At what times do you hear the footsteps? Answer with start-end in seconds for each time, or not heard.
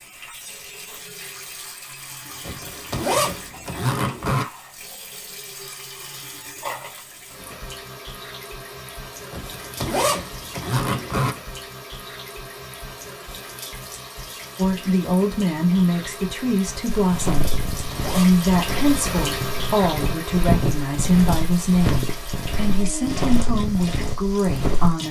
16.9-24.9.